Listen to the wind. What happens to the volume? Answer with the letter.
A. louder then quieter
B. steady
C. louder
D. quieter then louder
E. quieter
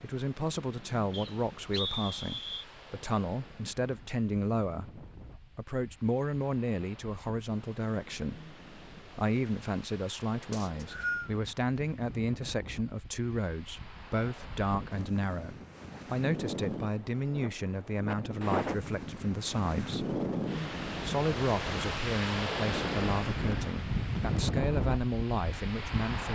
C.